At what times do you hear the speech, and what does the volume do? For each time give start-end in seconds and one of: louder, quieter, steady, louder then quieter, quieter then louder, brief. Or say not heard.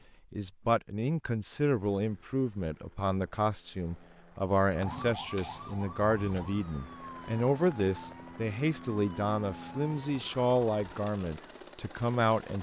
0.3-12.5 steady.